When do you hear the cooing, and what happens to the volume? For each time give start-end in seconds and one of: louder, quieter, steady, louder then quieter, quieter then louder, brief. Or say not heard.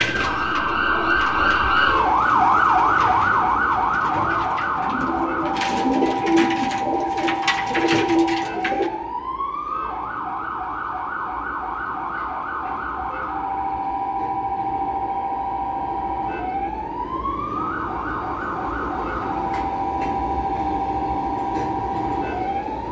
0.0-8.9 louder.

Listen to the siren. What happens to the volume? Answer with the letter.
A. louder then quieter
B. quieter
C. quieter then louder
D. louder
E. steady
B.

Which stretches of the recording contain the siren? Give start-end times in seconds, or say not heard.
0.0-22.8.